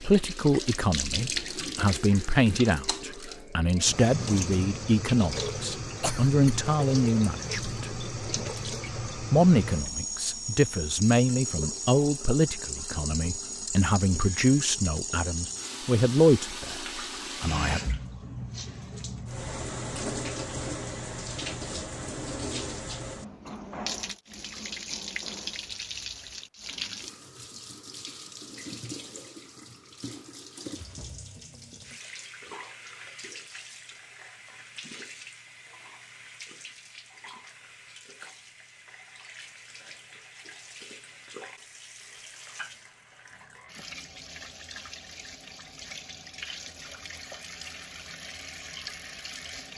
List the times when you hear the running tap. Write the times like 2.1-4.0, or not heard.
0.0-49.7.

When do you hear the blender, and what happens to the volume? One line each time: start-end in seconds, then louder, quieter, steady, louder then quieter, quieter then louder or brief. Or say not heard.
not heard.